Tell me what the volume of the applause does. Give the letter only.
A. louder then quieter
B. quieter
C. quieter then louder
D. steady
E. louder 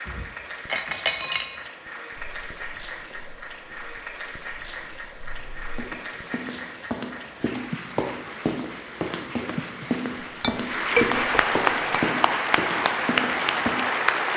E.